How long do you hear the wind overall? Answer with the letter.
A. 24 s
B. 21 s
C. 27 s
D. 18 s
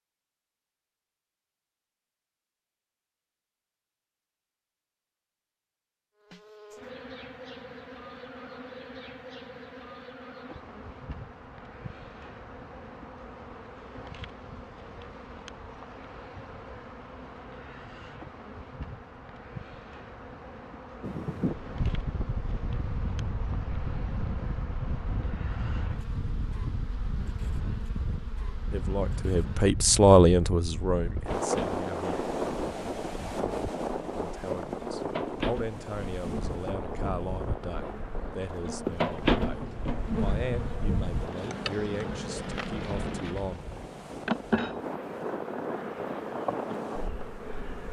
C.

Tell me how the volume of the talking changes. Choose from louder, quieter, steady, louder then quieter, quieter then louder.
quieter.